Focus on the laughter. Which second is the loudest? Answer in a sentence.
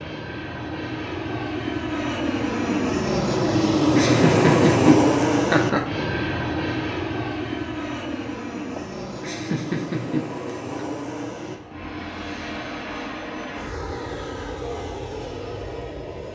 The volume of the laughter peaks at 5 seconds.